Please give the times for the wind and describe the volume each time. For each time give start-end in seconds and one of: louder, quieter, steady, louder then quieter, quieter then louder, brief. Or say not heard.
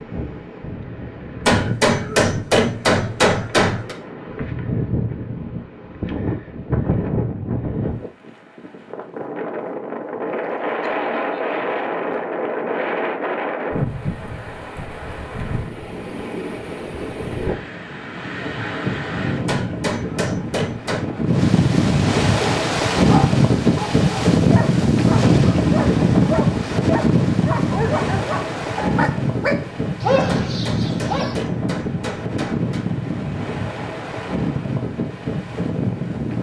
0.0-36.3 louder then quieter.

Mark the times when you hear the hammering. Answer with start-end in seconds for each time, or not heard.
1.4-4.0, 19.4-21.1, 30.2-32.9.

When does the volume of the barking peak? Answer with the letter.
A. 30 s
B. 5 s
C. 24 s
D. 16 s
A.